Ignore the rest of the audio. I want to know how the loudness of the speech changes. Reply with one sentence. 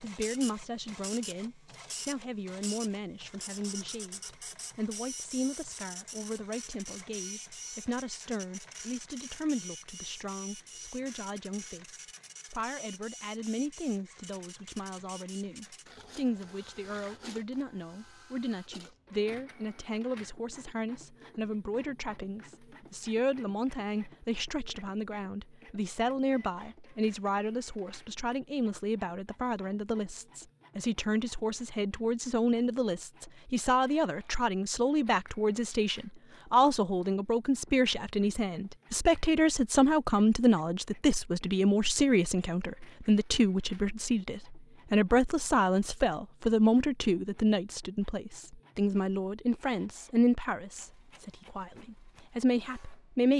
The volume of the speech goes up.